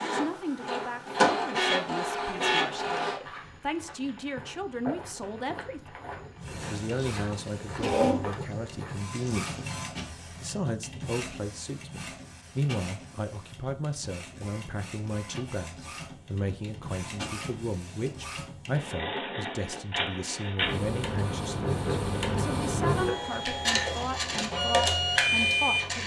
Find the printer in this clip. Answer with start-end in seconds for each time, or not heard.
0.0-3.2, 6.3-26.0.